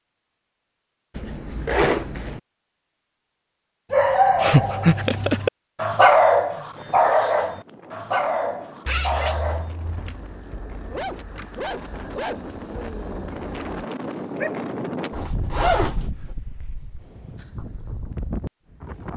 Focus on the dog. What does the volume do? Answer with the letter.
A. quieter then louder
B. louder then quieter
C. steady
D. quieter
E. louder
D.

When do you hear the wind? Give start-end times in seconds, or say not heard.
6.5-19.1.